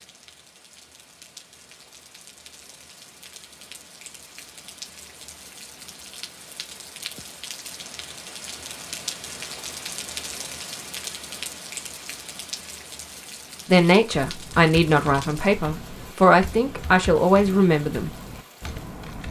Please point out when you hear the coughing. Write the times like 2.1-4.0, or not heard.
not heard.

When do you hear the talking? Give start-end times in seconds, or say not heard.
13.7-18.1.